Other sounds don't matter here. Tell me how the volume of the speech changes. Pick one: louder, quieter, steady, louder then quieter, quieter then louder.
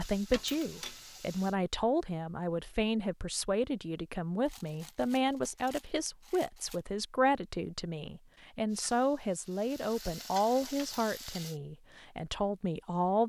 steady.